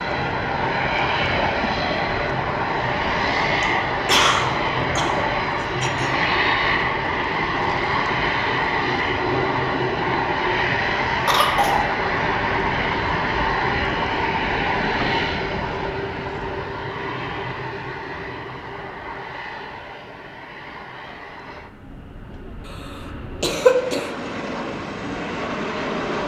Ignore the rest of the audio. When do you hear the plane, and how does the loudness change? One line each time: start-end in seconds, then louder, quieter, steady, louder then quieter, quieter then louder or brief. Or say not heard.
0.0-26.2 quieter.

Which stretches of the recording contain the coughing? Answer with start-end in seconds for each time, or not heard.
3.6-6.2, 11.2-11.8, 23.4-24.1.